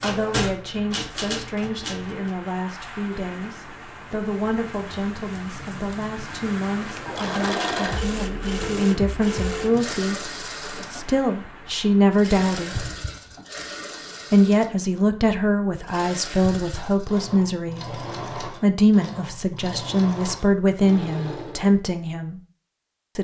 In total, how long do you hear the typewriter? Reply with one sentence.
You can hear the typewriter for 2 seconds altogether.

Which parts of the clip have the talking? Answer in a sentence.
You can hear the talking from 0.0 to 10.2 s, from 10.9 to 12.8 s and from 14.3 to 22.4 s.